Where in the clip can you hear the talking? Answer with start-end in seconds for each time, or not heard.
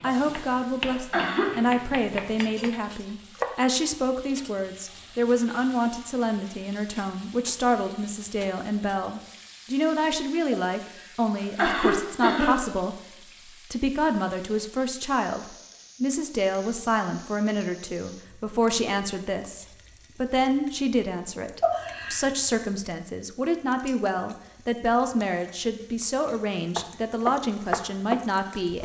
0.0-28.8.